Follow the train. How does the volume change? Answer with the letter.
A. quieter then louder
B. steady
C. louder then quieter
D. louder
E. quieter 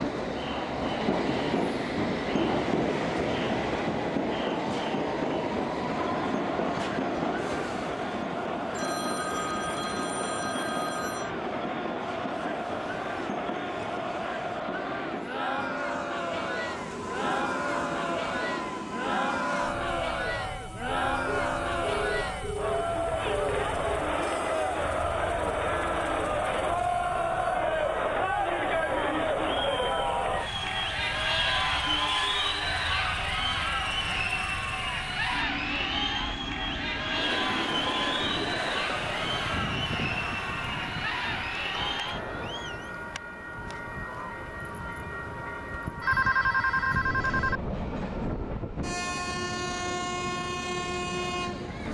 A.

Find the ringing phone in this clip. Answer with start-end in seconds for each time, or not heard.
8.7-11.3, 21.2-23.9, 46.0-47.6.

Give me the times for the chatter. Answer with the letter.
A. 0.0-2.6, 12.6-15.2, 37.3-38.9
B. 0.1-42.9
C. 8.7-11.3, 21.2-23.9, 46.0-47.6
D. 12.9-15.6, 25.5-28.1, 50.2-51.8
B.